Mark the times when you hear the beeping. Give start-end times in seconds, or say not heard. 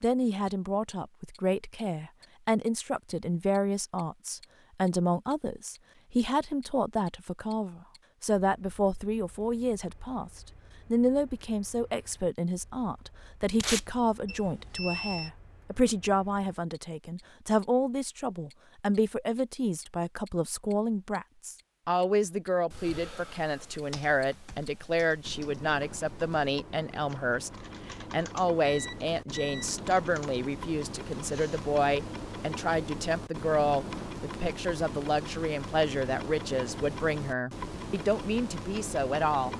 14.2-15.3, 28.6-29.8.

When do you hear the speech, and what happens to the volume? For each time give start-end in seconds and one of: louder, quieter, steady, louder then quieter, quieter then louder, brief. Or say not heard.
0.0-39.5 steady.